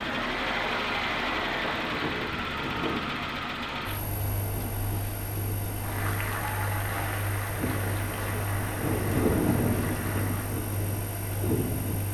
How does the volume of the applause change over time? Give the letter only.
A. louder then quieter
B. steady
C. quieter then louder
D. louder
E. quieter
E.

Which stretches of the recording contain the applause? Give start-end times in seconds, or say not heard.
5.8-10.6.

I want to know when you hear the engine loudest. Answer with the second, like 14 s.
1 s.